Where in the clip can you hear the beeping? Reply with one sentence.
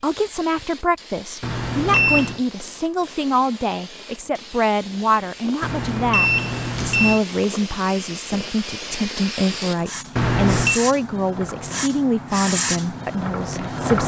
The beeping can be heard from 1.4 to 2.4 s, from 5.6 to 7.2 s and from 10.2 to 10.8 s.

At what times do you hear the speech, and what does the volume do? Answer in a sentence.
The speech can be heard from 0.0 to 14.0 s, at a steady volume.